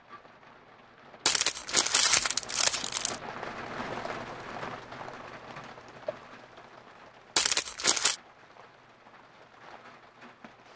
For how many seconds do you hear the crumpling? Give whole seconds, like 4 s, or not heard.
3 s.